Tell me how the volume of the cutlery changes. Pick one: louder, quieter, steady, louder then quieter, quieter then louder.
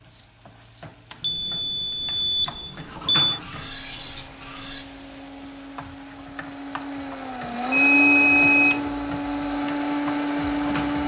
louder.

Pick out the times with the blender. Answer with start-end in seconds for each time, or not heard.
3.5-11.0.